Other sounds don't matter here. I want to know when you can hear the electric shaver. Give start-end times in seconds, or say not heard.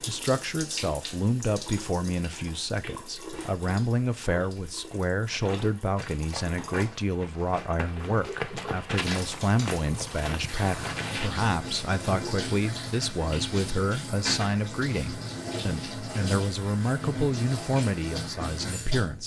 not heard.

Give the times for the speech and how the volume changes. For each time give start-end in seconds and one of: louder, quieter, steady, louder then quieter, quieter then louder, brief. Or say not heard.
0.1-19.2 steady.